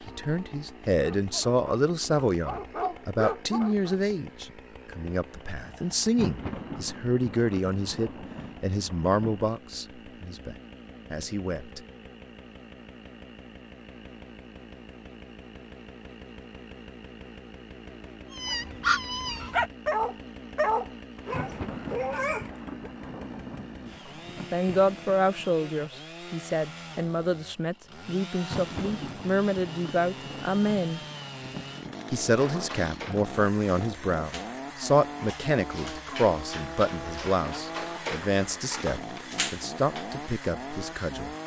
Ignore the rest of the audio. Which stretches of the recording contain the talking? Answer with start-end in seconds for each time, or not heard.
0.1-11.8, 24.5-31.0, 32.1-41.4.